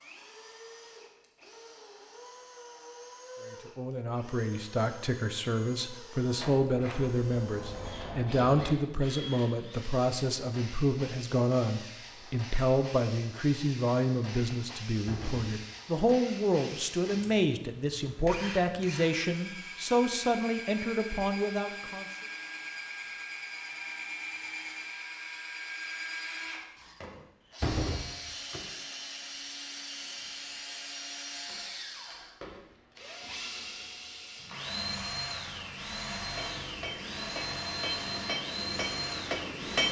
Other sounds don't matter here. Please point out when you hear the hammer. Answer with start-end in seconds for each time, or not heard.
36.3-39.8.